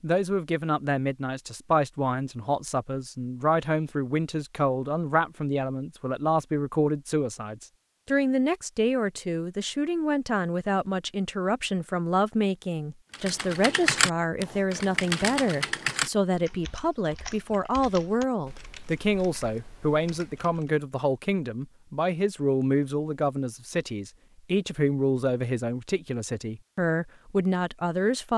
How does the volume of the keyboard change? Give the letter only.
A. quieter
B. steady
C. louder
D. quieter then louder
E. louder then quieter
A.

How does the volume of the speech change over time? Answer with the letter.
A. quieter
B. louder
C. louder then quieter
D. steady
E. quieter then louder
D.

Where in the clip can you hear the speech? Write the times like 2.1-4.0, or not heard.
0.0-28.3.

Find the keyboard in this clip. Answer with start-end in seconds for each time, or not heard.
13.1-20.7.